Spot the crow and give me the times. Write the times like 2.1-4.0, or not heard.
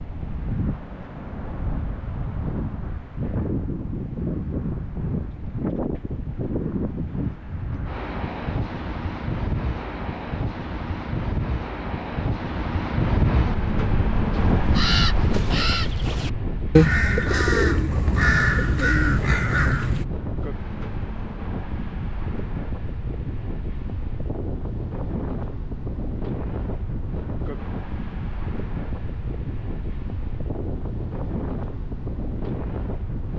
14.3-20.1.